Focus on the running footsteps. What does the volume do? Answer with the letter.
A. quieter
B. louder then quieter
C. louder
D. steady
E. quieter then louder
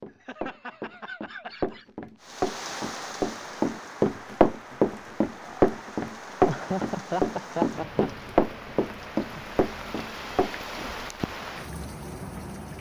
B.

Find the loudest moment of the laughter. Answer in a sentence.
The loudest moment of the laughter is at 7 seconds.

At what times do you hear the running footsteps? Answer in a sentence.
The running footsteps can be heard from 0.0 to 10.8 s.